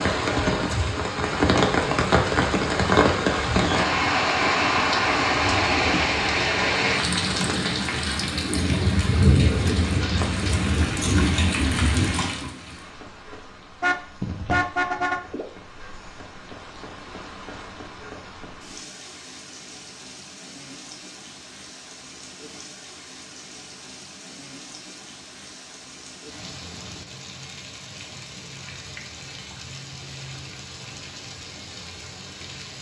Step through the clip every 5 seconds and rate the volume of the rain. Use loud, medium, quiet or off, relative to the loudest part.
loud, loud, medium, quiet, quiet, quiet, quiet.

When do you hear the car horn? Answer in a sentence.
You can hear the car horn from 13.8 to 15.2 s.